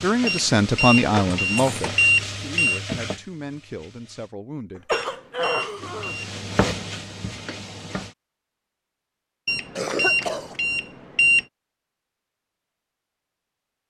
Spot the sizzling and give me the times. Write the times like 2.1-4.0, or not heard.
0.0-4.3, 5.8-8.2.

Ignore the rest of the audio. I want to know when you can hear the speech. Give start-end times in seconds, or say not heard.
0.0-5.0.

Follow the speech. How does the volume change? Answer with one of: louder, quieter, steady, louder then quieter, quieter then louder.
quieter.